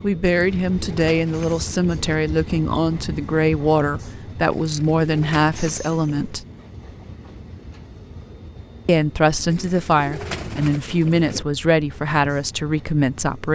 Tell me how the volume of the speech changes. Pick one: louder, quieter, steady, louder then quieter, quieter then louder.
steady.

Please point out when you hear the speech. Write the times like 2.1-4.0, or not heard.
0.0-6.5, 8.8-13.5.